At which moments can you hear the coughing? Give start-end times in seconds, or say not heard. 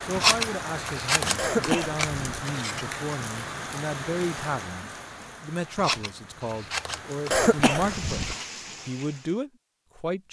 1.4-2.5, 7.3-8.3.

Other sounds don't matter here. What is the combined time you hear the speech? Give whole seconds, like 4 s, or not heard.
10 s.